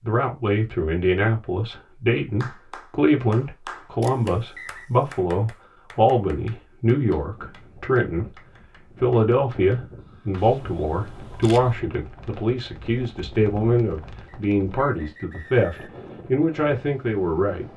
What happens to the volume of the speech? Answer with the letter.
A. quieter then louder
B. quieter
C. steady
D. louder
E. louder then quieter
C.